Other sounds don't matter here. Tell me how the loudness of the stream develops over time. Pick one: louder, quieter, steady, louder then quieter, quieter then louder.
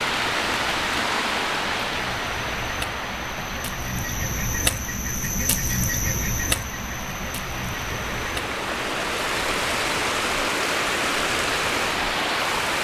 quieter then louder.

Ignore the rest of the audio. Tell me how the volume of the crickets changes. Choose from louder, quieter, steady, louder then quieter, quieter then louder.
louder then quieter.